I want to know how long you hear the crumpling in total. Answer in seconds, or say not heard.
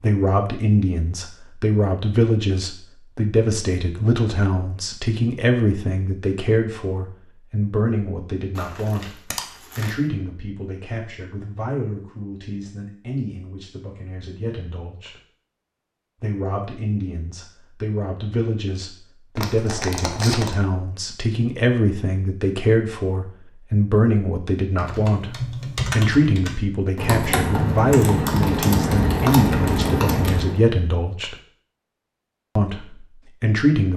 3 s.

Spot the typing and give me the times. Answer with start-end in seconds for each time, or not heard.
24.8-30.6.